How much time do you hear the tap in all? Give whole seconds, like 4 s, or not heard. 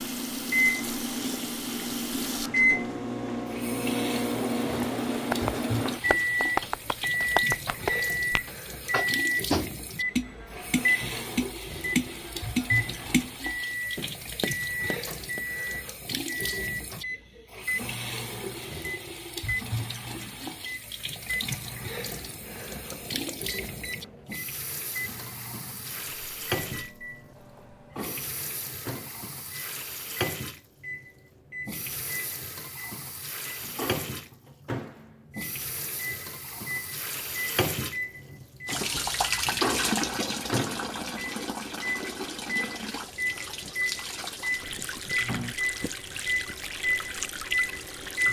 48 s.